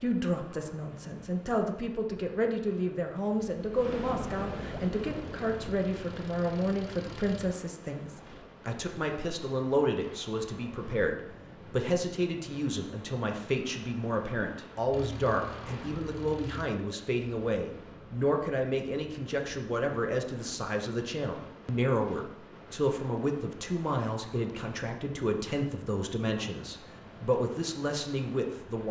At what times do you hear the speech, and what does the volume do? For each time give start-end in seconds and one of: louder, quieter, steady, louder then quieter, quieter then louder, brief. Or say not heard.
0.0-28.8 steady.